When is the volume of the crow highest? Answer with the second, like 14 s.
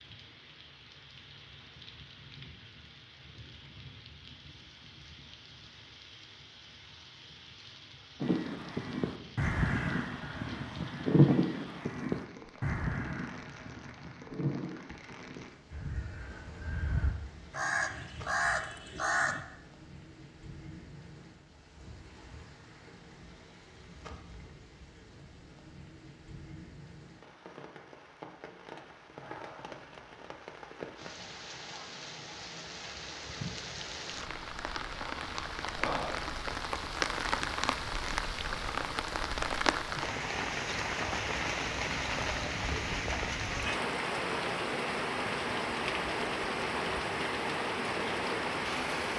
11 s.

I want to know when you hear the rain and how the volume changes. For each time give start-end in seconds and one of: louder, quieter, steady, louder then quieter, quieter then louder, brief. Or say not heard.
0.0-49.1 louder.